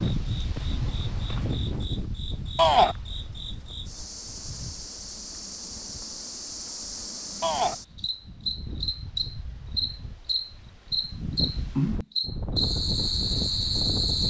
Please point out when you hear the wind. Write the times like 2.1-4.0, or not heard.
0.0-14.2.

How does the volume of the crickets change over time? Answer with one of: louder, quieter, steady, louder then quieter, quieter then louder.
louder.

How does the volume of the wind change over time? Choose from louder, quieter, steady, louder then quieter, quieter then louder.
quieter then louder.